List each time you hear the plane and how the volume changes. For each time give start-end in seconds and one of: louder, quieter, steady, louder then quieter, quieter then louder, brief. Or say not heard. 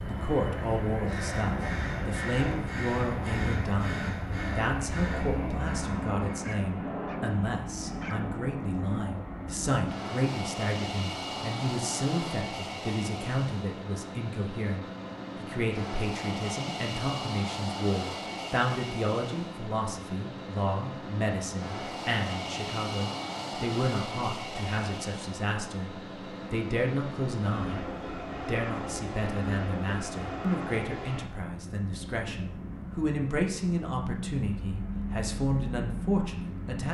0.0-36.8 steady.